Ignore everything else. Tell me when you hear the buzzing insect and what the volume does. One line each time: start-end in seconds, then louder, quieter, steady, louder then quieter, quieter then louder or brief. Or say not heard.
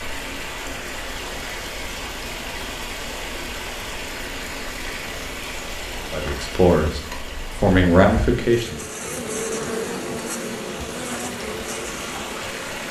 0.0-12.8 louder.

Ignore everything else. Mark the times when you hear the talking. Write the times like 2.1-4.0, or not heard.
6.1-8.8.